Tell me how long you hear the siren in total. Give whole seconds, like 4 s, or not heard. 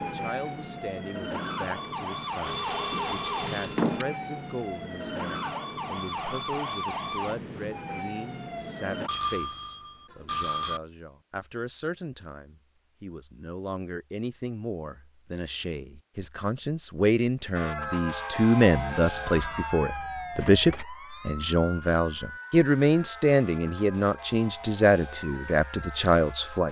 18 s.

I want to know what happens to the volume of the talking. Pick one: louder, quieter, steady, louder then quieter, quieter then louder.
louder.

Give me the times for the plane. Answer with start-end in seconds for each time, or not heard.
not heard.